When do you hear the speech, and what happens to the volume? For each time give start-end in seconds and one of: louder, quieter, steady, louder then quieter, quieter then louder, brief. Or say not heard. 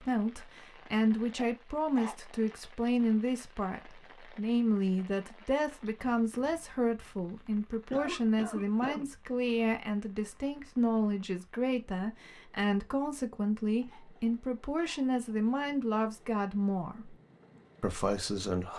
0.0-17.1 steady
17.8-18.7 brief.